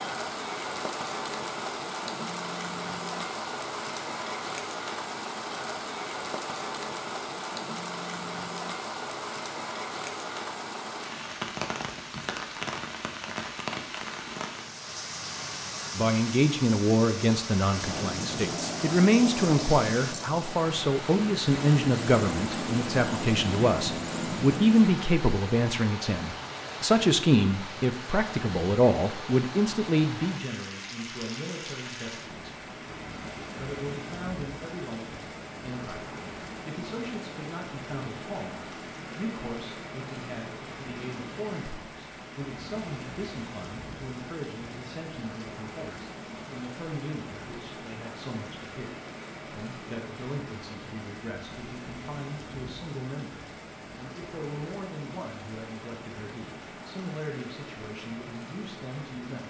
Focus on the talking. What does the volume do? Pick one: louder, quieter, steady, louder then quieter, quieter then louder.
quieter.